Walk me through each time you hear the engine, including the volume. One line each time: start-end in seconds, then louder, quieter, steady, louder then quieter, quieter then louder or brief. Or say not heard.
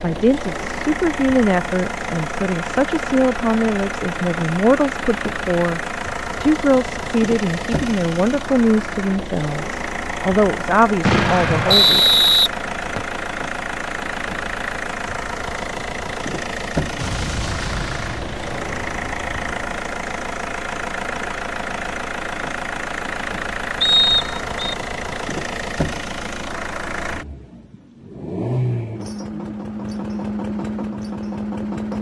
0.0-31.9 steady.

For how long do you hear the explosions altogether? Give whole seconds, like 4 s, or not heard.
4 s.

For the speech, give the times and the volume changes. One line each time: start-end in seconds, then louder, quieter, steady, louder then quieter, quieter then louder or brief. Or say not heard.
0.0-12.2 steady.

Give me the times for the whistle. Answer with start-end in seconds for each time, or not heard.
11.7-13.2, 23.8-24.8.